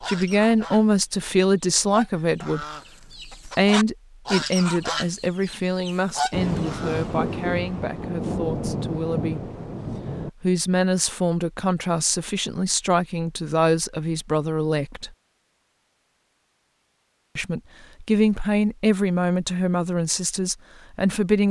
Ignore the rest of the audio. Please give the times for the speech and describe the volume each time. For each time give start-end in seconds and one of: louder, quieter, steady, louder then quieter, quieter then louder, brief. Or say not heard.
0.0-2.6 brief
3.5-9.5 quieter
10.4-15.1 steady
17.4-21.4 quieter.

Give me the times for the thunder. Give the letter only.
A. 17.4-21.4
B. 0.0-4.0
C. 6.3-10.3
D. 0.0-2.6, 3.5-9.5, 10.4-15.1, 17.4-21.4
C.